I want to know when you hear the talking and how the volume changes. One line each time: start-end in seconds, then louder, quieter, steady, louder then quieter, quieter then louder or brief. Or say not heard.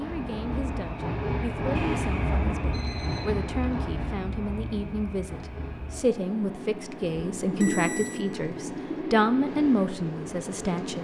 0.0-10.9 louder.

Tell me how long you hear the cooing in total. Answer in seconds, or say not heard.
4 s.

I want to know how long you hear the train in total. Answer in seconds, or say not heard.
11 s.